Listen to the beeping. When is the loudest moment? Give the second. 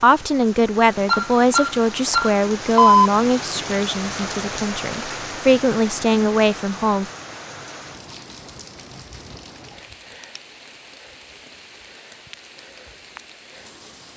3 s.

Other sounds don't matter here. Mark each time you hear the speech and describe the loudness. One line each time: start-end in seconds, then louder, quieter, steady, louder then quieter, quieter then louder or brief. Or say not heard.
0.0-7.0 quieter then louder.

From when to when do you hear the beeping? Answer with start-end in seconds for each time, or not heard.
1.1-3.1.